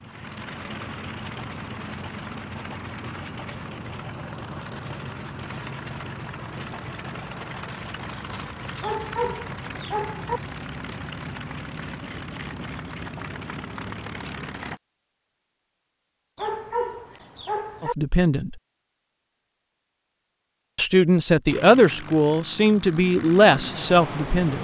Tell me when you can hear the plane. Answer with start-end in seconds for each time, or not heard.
0.0-14.8, 21.4-24.5.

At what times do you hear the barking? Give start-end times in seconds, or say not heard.
8.8-10.4, 16.4-17.9.